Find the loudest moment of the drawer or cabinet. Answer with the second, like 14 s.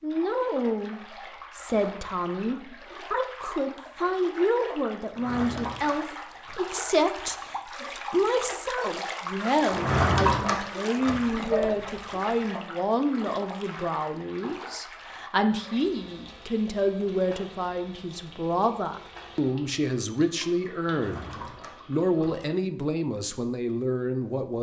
10 s.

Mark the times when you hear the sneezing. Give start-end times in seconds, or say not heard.
11.2-12.1.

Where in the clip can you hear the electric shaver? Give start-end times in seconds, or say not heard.
not heard.